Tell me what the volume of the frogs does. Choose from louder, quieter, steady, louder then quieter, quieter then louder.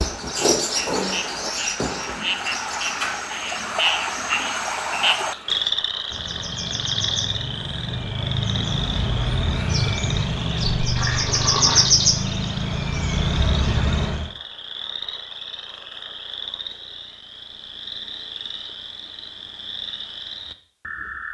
quieter.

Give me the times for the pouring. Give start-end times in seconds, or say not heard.
10.6-11.9.